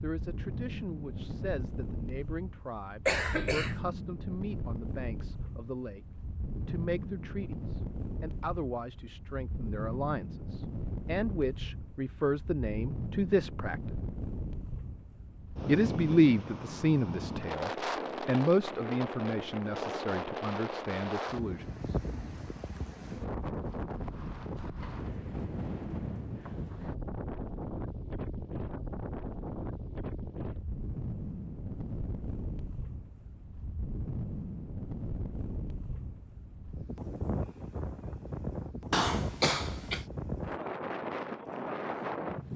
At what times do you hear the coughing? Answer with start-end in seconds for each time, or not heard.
3.0-3.8, 38.9-40.0.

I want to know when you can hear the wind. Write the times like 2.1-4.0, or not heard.
0.0-42.5.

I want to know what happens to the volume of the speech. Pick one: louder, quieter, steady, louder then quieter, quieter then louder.
louder then quieter.